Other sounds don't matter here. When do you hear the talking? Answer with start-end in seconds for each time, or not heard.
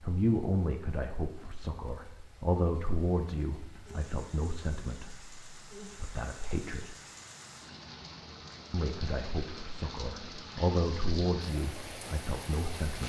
0.0-7.0, 8.7-13.0.